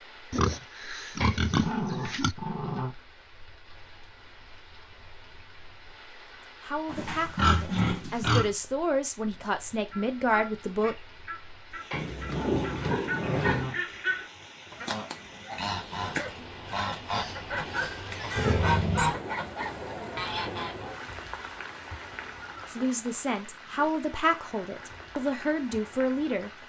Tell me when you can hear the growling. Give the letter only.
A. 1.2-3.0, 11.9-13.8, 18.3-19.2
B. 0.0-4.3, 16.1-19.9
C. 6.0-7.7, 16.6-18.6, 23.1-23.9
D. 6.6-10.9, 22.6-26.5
A.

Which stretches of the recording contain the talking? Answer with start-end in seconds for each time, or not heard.
6.6-10.9, 22.6-26.5.